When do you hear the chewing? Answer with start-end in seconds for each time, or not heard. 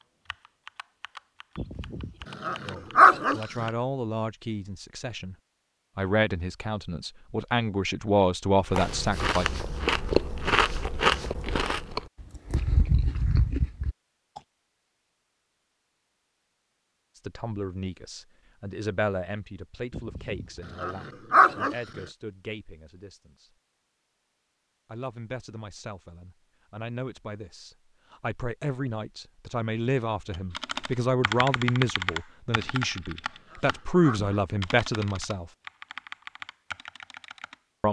8.7-14.4.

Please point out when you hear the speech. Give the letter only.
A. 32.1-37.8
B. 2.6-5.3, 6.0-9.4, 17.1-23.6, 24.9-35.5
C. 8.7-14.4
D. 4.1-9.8
B.